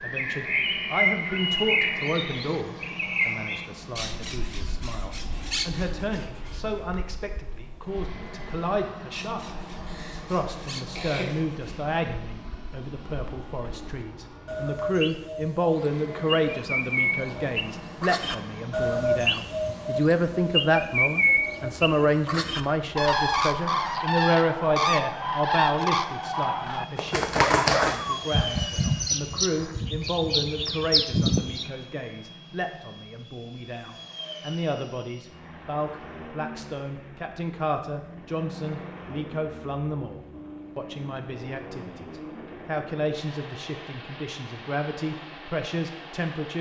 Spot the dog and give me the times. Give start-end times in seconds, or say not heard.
27.4-28.2.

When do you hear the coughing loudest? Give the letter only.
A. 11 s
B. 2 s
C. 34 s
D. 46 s
A.